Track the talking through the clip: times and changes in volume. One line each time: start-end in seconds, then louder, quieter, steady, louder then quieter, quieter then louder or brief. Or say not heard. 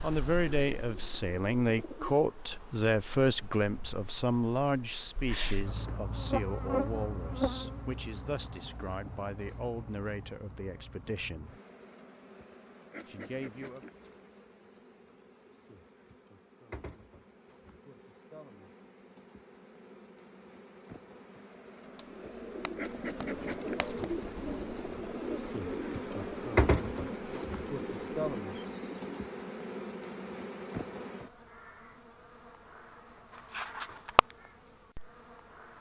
0.0-11.6 quieter
13.1-13.8 brief.